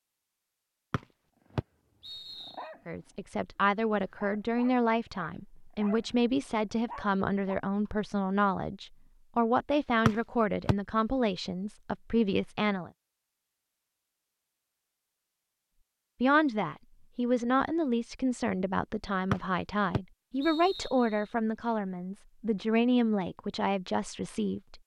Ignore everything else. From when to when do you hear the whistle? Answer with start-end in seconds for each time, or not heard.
0.9-2.6, 10.1-10.8, 19.3-21.2.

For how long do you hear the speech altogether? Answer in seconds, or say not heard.
19 s.